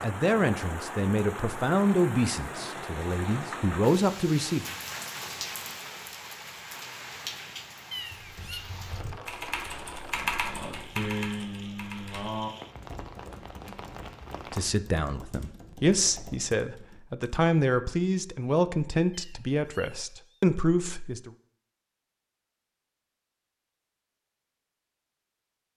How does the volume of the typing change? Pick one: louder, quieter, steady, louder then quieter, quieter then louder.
louder then quieter.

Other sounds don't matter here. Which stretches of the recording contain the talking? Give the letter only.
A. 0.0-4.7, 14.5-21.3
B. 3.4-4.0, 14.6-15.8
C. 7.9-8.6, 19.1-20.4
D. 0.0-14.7
A.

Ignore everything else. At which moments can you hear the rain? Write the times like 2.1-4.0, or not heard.
0.0-14.7.